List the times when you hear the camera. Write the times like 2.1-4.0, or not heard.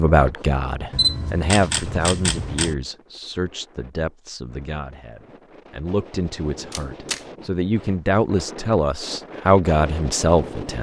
0.9-2.8, 6.7-7.2.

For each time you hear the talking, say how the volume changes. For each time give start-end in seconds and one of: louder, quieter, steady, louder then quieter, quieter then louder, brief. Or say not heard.
0.0-10.7 quieter then louder.